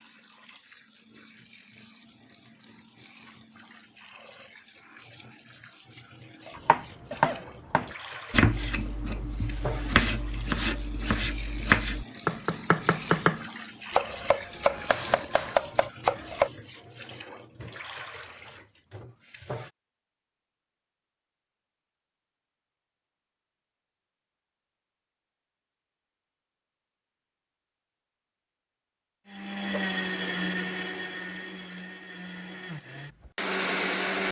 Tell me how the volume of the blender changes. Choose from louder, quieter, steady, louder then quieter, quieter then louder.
quieter then louder.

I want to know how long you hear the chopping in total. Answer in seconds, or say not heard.
10 s.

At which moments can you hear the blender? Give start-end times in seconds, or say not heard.
29.2-34.2.